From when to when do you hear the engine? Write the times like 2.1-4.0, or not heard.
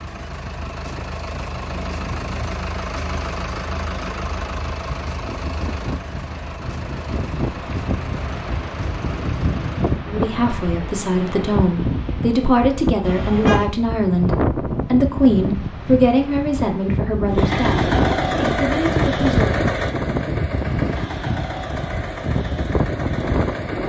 0.0-10.0, 17.2-23.8.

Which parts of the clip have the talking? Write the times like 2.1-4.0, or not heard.
10.1-19.5.